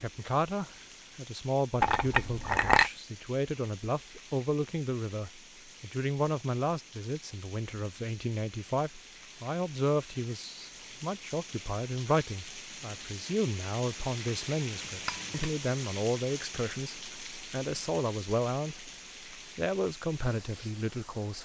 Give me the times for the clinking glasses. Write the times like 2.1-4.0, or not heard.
1.8-2.9, 14.8-15.5.